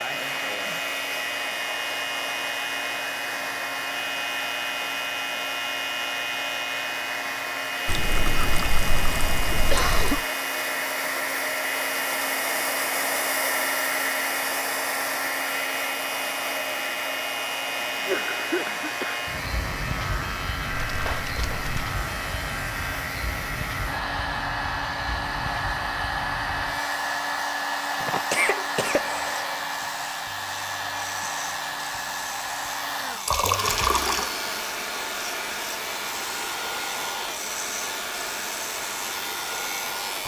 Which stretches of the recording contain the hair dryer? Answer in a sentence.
You can hear the hair dryer from 0.0 to 40.2 s.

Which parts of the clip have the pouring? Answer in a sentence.
The pouring can be heard from 7.8 to 10.2 s, from 20.9 to 21.6 s and from 33.2 to 34.3 s.